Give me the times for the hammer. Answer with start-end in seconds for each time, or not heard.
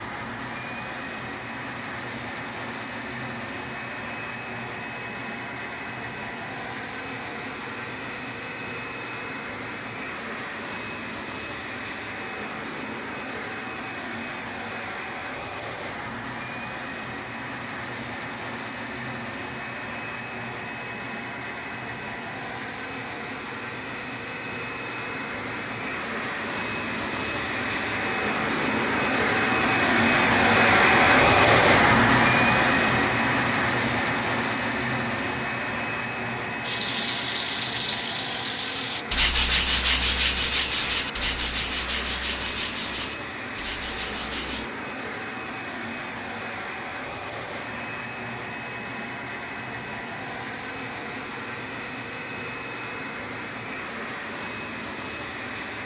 not heard.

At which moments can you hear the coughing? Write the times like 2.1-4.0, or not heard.
not heard.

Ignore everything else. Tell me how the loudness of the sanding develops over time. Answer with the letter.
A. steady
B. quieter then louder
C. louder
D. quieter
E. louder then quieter
D.